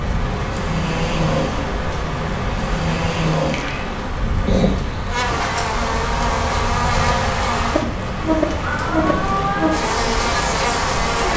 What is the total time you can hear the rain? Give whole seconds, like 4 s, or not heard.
11 s.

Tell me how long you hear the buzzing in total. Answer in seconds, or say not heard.
6 s.